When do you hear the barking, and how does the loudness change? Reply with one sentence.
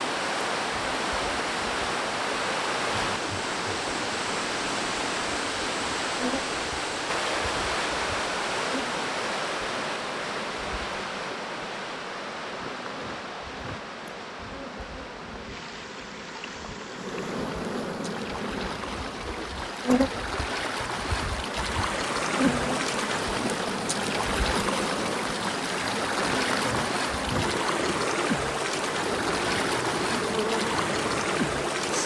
The barking can't be heard in this clip.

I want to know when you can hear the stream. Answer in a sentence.
The stream can be heard from 0.0 to 32.0 s.